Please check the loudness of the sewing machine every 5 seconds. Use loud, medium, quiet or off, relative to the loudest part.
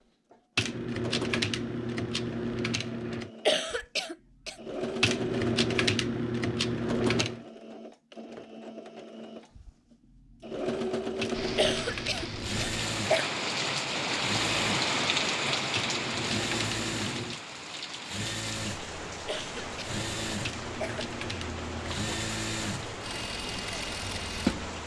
medium, loud, loud, loud, loud.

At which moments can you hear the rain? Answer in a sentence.
You can hear the rain from 11.3 to 24.8 s.